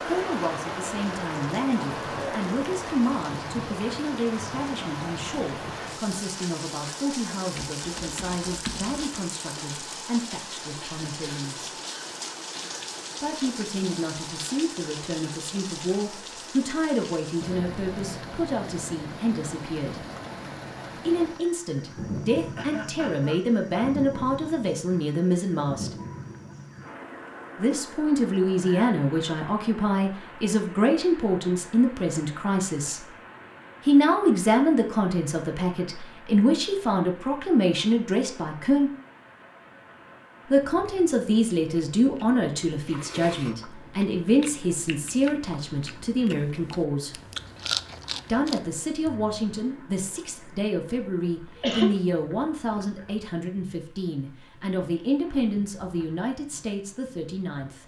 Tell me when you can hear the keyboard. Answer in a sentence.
You can hear the keyboard from 7.5 to 9.2 s.